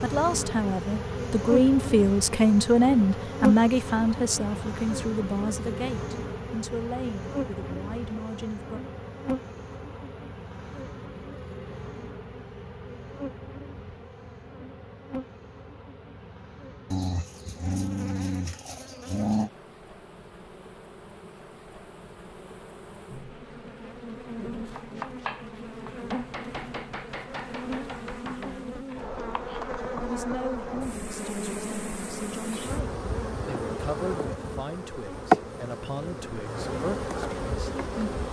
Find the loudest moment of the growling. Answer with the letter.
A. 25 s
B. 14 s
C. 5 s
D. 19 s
D.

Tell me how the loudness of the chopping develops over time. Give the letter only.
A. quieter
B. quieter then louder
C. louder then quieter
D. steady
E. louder
A.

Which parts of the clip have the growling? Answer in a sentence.
You can hear the growling from 16.9 to 19.5 s.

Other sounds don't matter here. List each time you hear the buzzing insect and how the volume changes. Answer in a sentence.
The buzzing insect can be heard from 0.0 to 38.2 s, getting quieter then louder.